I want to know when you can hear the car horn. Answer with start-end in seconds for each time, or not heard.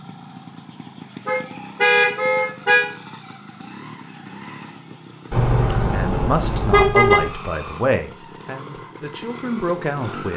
1.2-2.9, 5.3-7.3.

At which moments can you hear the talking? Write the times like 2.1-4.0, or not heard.
5.9-10.3.